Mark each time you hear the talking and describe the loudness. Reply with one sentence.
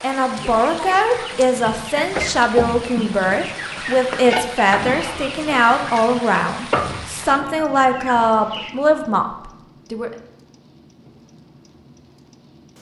The talking can be heard from 0.0 to 10.1 s, at a steady volume.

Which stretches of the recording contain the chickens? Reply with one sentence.
You can hear the chickens from 0.2 to 9.0 s.